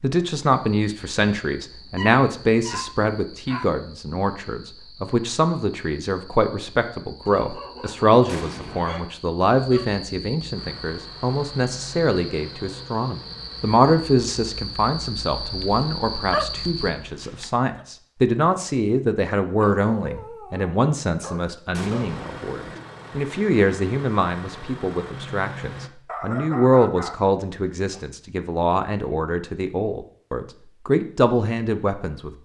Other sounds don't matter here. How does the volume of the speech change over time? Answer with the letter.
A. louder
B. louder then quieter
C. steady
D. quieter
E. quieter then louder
C.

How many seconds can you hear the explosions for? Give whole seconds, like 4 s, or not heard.
2 s.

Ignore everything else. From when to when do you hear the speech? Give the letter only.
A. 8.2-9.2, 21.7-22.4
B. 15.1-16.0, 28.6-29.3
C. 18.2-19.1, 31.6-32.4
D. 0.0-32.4
D.